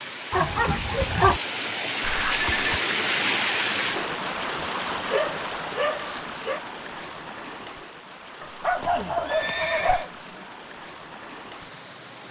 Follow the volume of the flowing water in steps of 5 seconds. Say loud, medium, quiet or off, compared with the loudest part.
loud, medium, quiet.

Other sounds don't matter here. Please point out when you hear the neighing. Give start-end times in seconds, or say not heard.
2.0-2.8, 8.8-10.1.